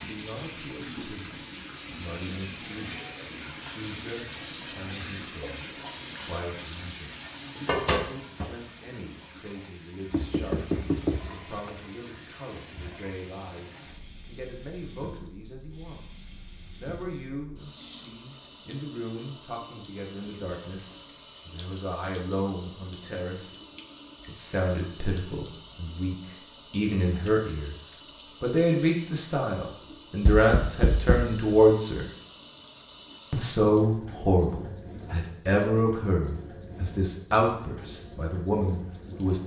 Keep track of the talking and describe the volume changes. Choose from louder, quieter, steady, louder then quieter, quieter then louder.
louder.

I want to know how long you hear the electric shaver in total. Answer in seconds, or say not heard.
not heard.